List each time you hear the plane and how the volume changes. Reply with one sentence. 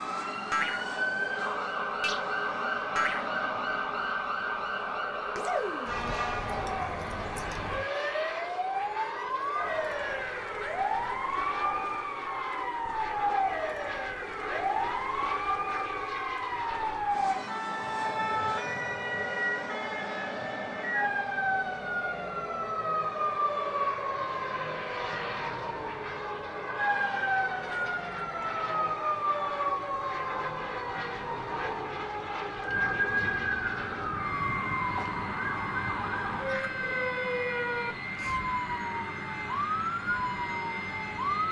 You can hear the plane from 0.0 to 41.4 s, at a steady volume.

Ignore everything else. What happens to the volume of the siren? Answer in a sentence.
The loudness of the siren stays about the same.